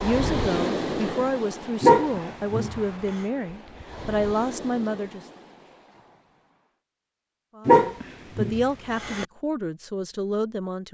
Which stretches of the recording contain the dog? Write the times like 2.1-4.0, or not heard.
1.8-2.8, 7.7-9.2.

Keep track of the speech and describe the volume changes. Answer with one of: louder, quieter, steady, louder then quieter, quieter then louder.
steady.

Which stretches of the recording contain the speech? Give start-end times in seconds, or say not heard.
0.0-5.2, 7.5-10.8.